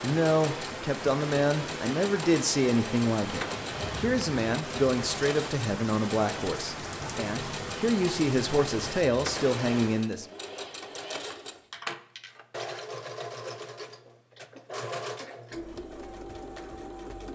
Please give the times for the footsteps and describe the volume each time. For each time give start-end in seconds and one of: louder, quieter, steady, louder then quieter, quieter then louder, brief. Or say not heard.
not heard.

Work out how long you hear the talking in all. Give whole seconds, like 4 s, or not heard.
10 s.